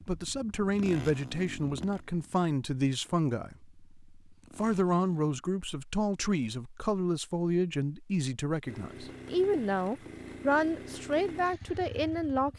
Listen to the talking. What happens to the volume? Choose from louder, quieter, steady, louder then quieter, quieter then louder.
steady.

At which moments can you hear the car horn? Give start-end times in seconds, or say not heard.
not heard.